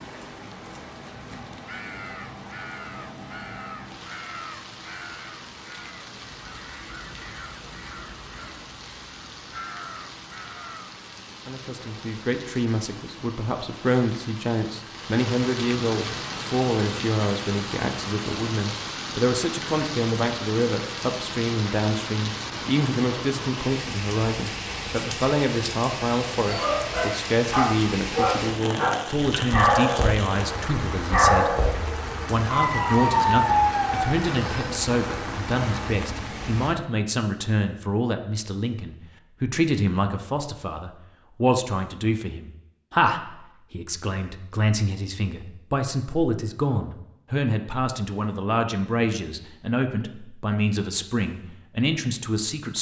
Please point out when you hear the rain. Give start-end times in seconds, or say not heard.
0.0-36.8.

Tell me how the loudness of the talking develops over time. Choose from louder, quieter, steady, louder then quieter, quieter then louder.
steady.